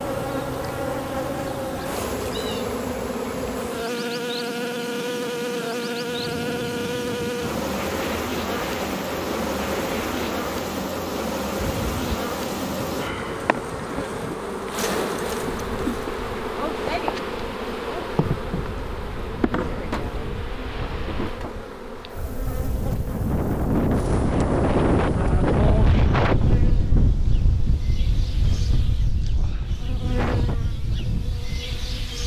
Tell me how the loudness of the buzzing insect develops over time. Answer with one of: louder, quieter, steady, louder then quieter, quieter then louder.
quieter.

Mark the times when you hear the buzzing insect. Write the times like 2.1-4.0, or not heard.
0.0-32.2.